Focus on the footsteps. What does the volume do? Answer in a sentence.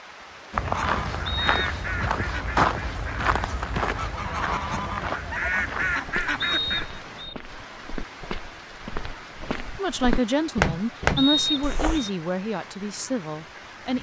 The volume of the footsteps goes down, then up.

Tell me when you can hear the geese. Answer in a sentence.
You can hear the geese from 0.7 to 6.8 s.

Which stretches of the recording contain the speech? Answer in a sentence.
The speech can be heard from 9.8 to 13.9 s.